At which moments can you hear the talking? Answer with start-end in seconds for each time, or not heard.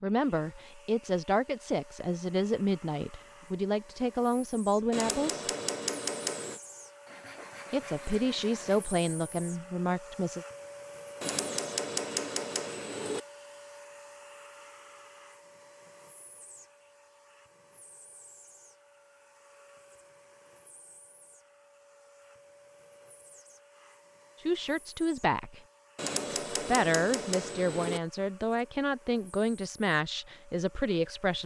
0.0-5.5, 7.7-10.4, 24.4-25.6, 26.5-31.4.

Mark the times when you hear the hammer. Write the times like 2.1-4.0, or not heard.
4.9-6.6, 11.2-13.2, 25.9-28.0.